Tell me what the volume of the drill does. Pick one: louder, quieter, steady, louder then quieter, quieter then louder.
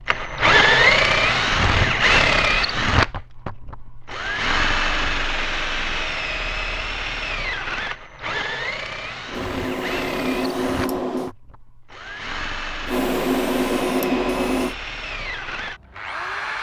quieter.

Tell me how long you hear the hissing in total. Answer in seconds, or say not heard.
4 s.